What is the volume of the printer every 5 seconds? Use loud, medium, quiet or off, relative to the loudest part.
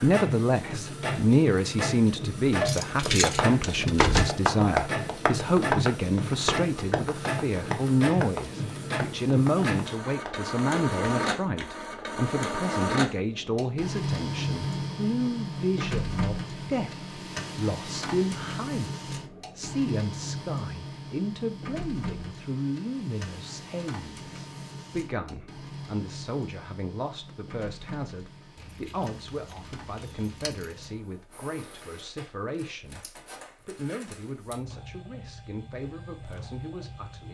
loud, loud, loud, loud, medium, quiet, quiet, quiet.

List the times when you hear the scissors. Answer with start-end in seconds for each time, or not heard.
not heard.